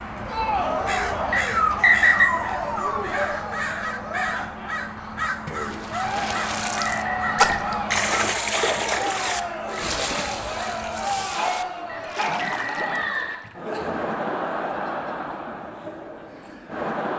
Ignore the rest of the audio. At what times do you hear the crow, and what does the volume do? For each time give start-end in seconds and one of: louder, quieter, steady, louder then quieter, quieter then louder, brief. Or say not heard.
0.0-11.3 quieter.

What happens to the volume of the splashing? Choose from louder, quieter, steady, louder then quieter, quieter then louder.
louder then quieter.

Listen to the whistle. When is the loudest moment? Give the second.
2 s.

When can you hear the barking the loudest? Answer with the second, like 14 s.
2 s.